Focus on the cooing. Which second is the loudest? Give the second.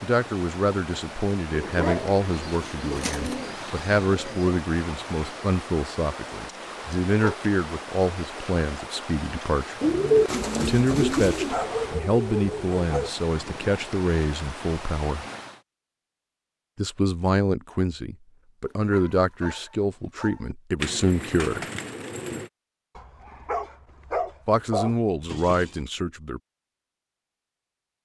10 s.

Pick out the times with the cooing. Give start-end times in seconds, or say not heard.
2.3-4.5, 9.8-11.6, 20.8-22.5.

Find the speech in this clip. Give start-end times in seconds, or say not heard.
0.0-9.8, 10.6-15.2, 16.8-21.6, 24.4-26.4.